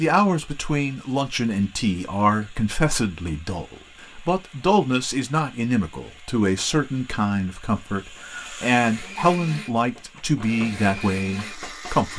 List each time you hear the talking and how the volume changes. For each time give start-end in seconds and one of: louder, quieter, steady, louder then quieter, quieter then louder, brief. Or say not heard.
0.0-12.1 steady.